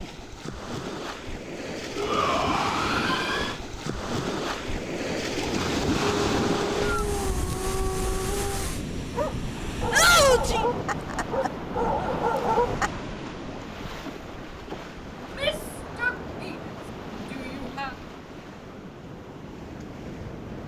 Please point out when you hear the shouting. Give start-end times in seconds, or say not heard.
1.9-3.5, 9.9-10.7, 15.2-16.6, 17.3-17.9.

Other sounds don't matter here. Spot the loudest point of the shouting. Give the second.
10 s.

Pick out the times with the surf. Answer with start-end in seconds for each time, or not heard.
0.0-20.6.